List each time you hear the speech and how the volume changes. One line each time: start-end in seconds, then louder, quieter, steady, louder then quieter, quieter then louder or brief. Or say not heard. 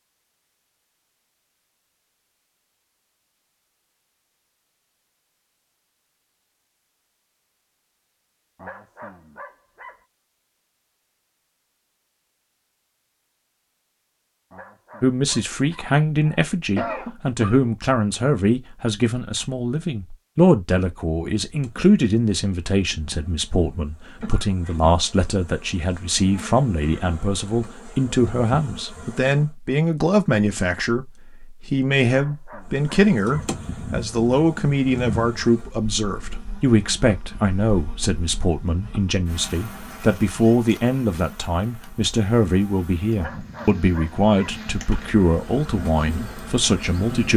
15.0-47.3 steady.